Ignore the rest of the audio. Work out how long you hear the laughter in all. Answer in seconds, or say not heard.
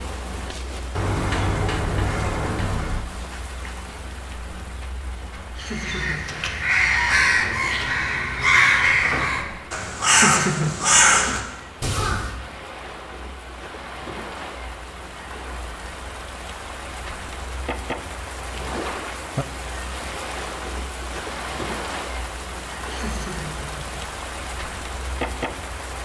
3 s.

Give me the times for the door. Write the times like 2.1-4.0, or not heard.
0.9-3.0, 9.0-9.8, 18.6-19.1.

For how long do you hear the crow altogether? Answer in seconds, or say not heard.
7 s.